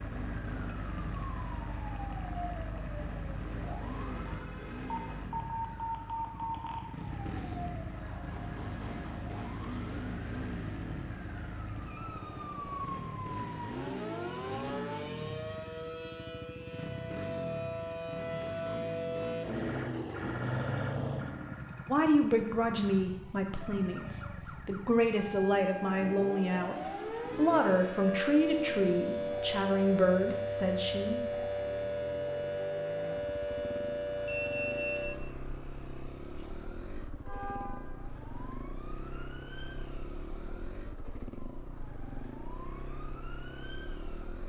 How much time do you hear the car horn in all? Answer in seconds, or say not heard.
3 s.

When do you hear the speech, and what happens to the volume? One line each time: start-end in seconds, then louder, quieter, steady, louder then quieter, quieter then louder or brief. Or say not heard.
21.9-31.5 steady.